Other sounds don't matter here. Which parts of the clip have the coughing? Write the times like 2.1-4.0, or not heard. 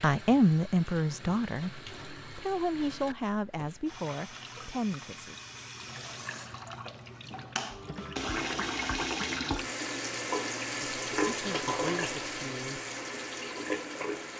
not heard.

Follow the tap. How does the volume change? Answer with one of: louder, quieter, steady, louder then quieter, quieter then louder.
louder.